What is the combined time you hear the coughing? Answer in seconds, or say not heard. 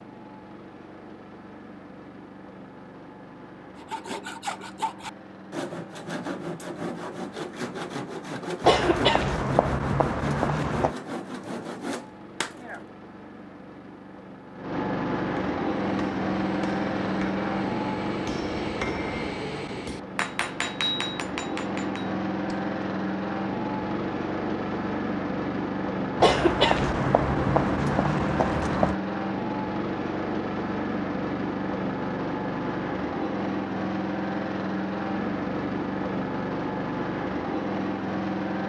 5 s.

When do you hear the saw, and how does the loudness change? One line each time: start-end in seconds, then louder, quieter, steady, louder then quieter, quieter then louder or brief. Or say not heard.
3.8-12.8 steady.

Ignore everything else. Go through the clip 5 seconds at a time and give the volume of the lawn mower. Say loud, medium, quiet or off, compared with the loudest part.
quiet, quiet, medium, loud, loud, loud, loud, loud.